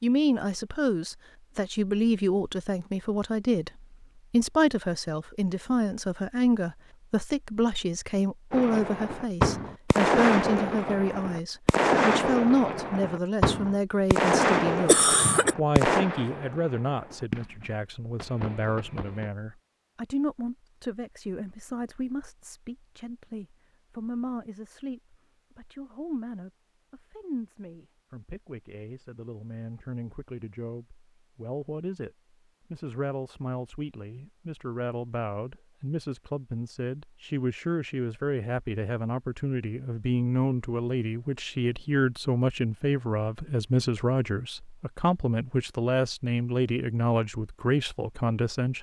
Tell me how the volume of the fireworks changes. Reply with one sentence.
The loudness of the fireworks goes down.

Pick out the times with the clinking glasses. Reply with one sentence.
The clinking glasses can't be heard in this clip.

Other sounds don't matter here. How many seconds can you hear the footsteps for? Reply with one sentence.
The footsteps can't be heard in this clip.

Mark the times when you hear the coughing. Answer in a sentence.
The coughing can be heard from 14.8 to 15.6 s.